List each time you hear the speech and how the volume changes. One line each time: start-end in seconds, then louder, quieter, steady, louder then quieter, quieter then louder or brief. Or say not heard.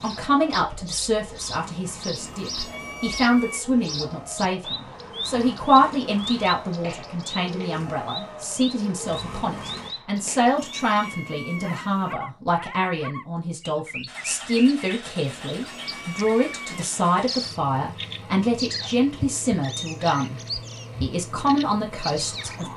0.0-20.4 steady
21.0-22.7 brief.